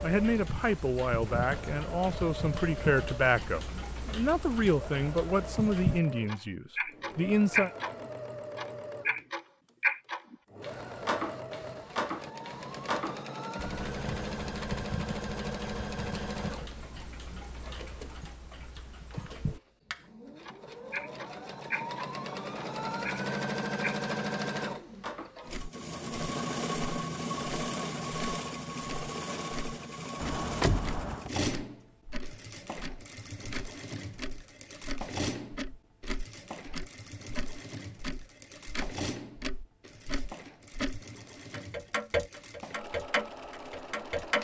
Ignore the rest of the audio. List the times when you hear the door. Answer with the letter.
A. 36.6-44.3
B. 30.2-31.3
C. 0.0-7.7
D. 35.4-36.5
B.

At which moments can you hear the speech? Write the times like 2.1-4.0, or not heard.
0.0-7.7.